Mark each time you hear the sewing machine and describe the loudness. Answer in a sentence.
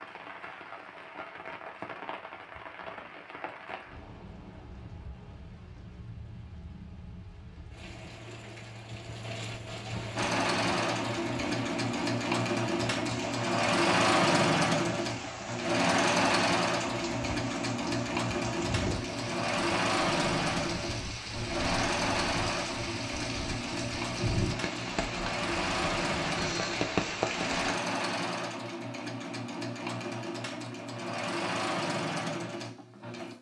The sewing machine can be heard from 10.2 to 33.3 s, getting quieter.